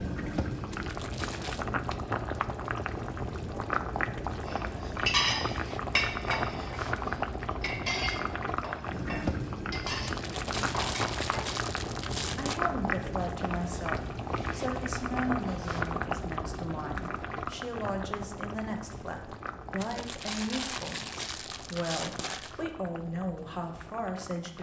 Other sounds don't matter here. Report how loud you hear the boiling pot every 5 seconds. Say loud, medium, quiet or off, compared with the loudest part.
loud, loud, loud, loud, quiet.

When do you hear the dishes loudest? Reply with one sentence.
The volume of the dishes peaks at 5 seconds.